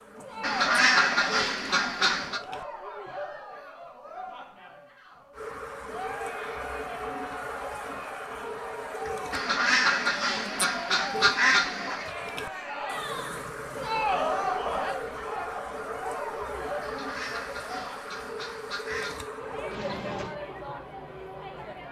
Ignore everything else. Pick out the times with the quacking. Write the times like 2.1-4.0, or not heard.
0.4-2.4, 9.3-12.1, 16.8-19.2.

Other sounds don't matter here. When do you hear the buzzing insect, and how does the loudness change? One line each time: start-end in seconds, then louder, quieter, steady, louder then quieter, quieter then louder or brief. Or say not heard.
0.0-2.6 brief
5.3-20.4 steady.